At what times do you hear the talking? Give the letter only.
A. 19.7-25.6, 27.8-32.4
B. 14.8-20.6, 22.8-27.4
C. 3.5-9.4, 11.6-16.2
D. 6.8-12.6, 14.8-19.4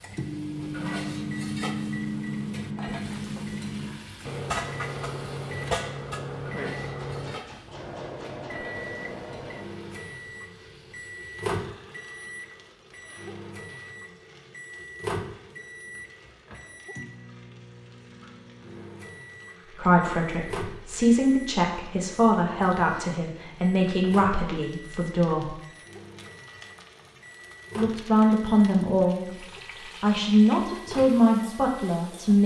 A.